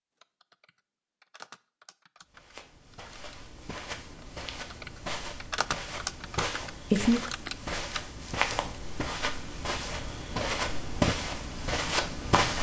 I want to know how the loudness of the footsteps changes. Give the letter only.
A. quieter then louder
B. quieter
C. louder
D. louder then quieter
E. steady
C.